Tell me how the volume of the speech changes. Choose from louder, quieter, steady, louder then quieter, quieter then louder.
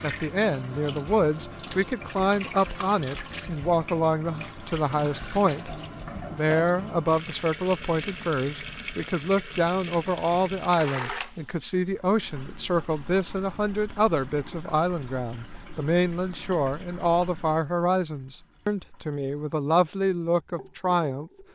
steady.